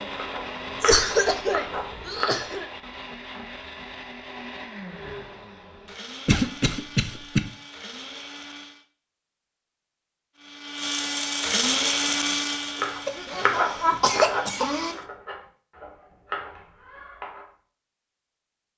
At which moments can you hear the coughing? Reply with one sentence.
The coughing can be heard from 0.8 to 2.6 s, from 6.2 to 7.4 s and from 13.1 to 14.9 s.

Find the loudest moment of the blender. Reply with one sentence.
The volume of the blender peaks at 12 seconds.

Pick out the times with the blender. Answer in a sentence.
You can hear the blender from 0.0 to 8.8 s and from 10.3 to 15.1 s.